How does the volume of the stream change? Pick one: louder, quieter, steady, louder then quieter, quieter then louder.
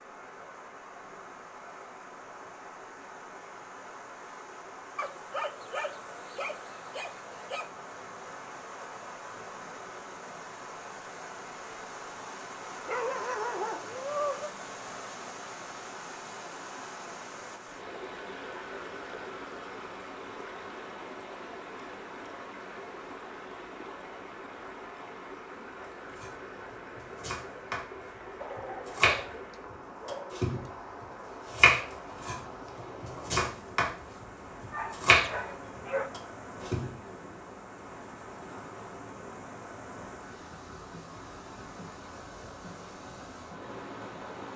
steady.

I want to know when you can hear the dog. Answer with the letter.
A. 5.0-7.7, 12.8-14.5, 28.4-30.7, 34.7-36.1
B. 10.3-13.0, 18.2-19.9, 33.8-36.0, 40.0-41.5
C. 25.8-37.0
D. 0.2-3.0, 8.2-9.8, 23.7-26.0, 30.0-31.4
A.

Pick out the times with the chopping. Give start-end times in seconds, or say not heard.
25.8-37.0.